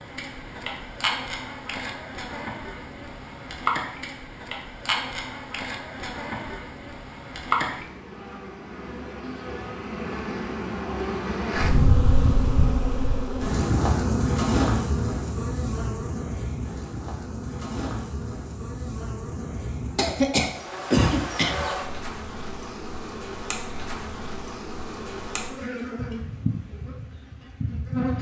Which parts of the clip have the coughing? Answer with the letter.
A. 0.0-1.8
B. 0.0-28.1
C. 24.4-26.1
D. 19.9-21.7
D.